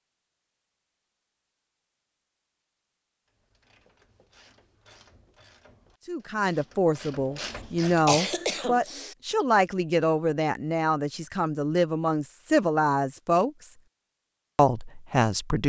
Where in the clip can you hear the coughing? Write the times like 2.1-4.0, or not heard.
7.3-9.2.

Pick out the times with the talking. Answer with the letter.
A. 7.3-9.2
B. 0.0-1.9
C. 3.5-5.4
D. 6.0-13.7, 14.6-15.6
D.